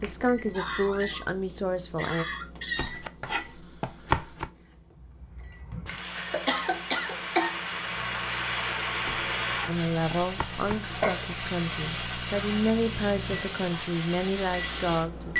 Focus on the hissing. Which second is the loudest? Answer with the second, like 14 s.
9 s.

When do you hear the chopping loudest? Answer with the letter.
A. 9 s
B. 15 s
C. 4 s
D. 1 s
C.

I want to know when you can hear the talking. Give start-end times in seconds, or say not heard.
0.0-2.2, 9.7-15.3.